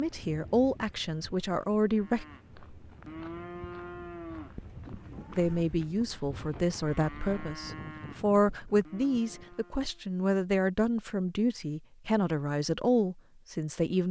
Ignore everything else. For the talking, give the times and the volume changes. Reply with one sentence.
The talking can be heard briefly from 0.0 to 2.2 s; and from 5.3 to 14.0 s, at a steady volume.